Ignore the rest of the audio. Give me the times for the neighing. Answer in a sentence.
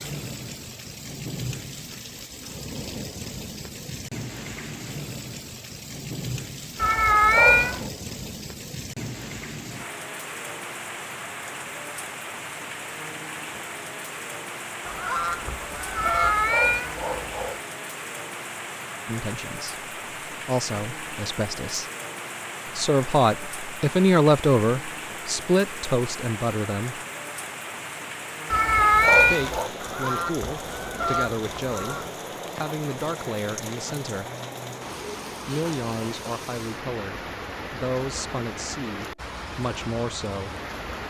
You can't hear the neighing here.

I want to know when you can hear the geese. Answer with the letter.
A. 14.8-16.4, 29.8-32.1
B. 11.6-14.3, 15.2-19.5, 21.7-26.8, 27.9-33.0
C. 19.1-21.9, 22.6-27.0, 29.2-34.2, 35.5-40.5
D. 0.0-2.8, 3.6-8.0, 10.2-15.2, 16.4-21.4
A.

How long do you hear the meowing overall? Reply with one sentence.
The meowing can be heard for 4 seconds in total.